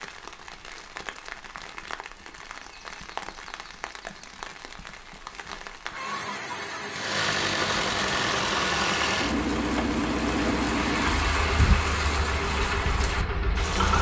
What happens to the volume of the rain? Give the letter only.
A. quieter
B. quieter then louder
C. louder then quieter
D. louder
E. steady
D.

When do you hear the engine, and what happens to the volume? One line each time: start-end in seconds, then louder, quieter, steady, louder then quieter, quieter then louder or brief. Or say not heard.
6.9-13.9 quieter.